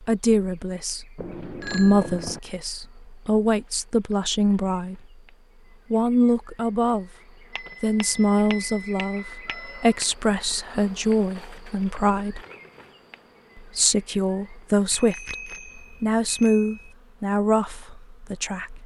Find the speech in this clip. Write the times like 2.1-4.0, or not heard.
0.0-5.0, 5.9-7.1, 7.8-12.4, 13.6-18.8.